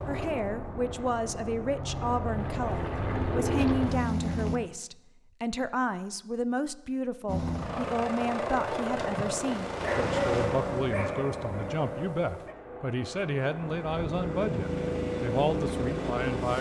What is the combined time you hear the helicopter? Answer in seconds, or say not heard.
14 s.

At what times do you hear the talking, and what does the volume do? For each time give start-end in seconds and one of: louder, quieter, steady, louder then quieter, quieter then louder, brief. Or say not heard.
0.1-16.5 steady.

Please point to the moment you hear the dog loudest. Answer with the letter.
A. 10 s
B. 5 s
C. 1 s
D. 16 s
A.